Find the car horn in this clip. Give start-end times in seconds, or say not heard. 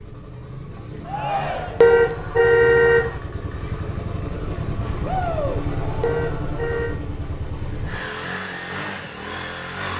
1.8-3.1, 6.0-7.0.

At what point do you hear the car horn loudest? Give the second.
2 s.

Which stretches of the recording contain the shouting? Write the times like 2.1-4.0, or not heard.
1.1-1.9, 5.0-5.7.